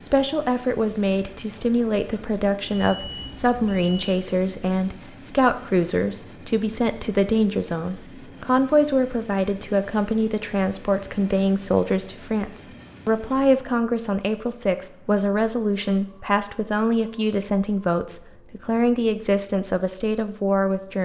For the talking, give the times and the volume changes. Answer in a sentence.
The talking can be heard from 0.0 to 21.0 s, at a steady volume.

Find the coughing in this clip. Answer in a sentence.
The coughing can't be heard in this clip.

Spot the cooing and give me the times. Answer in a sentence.
You can't hear the cooing here.